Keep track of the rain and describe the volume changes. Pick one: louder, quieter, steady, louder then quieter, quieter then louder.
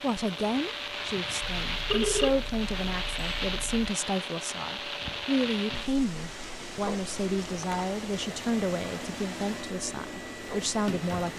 quieter.